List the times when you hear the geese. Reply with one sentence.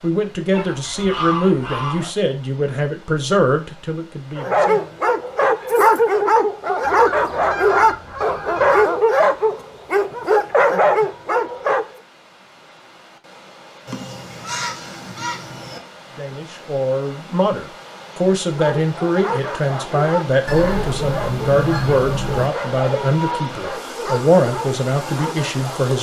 You can hear the geese from 0.5 to 2.1 s, from 6.8 to 8.8 s, from 13.8 to 15.8 s and from 20.4 to 22.5 s.